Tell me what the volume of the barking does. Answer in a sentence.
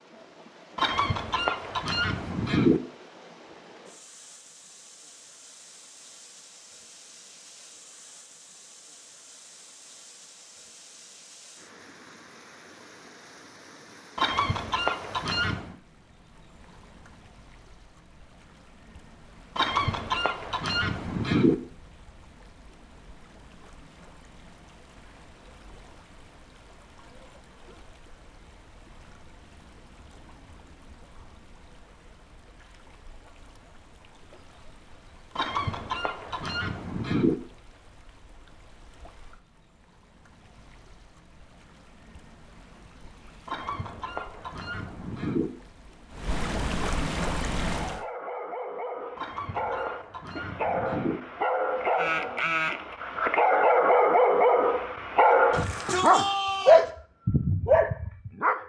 The loudness of the barking goes up.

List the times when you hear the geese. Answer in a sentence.
You can hear the geese from 0.8 to 2.8 s, from 14.2 to 15.8 s, from 19.6 to 21.6 s, from 35.4 to 37.4 s, from 43.5 to 45.5 s and from 49.1 to 51.2 s.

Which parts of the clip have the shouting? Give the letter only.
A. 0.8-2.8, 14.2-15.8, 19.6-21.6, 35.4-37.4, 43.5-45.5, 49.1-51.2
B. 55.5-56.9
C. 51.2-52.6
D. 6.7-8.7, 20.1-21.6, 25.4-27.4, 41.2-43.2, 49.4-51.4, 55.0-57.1
B.